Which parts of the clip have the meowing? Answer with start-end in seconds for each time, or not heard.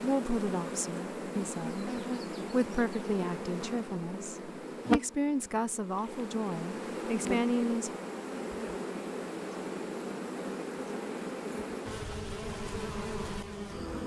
not heard.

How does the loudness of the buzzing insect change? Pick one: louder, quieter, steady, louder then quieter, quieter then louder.
steady.